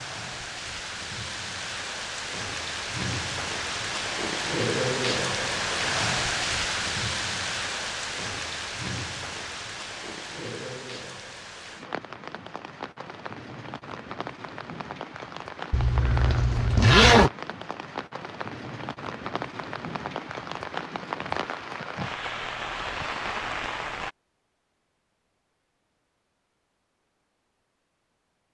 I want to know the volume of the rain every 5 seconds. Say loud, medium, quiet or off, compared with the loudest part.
loud, loud, medium, medium, loud, off.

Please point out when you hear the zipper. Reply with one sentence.
The zipper can be heard from 15.7 to 17.3 s.